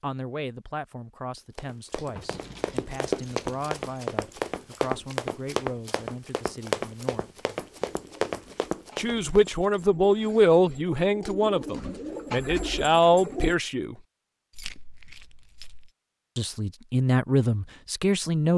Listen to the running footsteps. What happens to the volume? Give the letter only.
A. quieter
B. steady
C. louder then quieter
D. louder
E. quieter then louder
B.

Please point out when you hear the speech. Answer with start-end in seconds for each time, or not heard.
0.0-7.5, 8.9-13.9, 16.4-18.5.